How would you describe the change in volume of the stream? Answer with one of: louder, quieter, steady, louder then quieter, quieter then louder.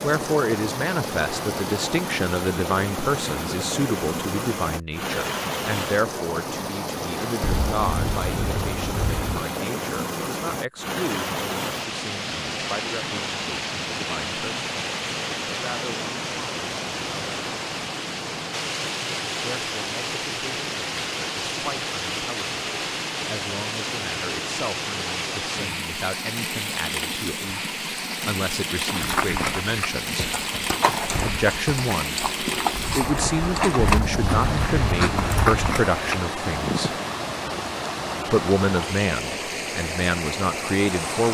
steady.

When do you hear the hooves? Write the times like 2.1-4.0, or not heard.
28.9-37.0.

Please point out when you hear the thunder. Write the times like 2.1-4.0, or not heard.
7.4-9.4, 33.9-35.8.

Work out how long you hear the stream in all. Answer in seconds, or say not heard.
41 s.